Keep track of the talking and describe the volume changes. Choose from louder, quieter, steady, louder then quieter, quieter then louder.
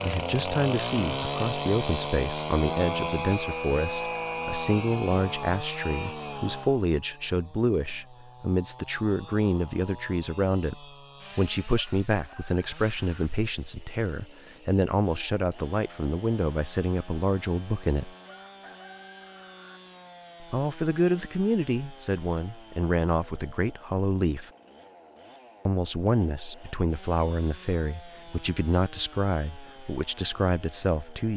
steady.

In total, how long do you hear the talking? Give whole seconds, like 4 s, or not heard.
28 s.